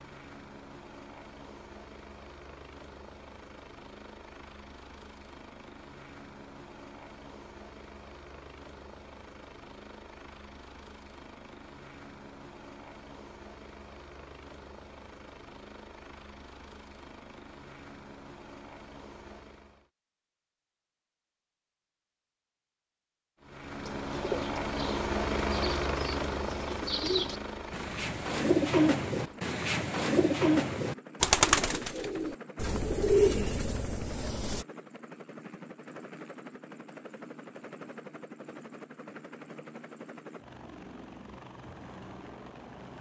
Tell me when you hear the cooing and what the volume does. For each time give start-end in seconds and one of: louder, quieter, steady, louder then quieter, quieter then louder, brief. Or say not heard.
23.9-34.6 louder.